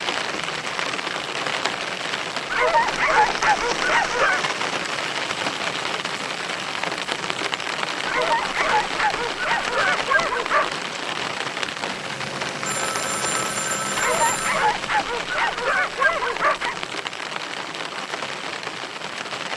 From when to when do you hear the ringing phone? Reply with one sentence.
You can hear the ringing phone from 12.6 to 14.6 s.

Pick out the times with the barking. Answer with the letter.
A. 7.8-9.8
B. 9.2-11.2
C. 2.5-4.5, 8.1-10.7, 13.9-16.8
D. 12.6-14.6
C.